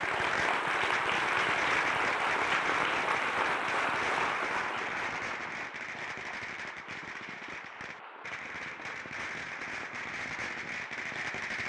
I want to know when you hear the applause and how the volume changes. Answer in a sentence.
The applause can be heard from 0.0 to 11.6 s, getting quieter.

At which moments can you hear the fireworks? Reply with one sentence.
The fireworks can be heard from 0.0 to 11.6 s.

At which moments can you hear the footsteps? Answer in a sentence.
You can't hear the footsteps here.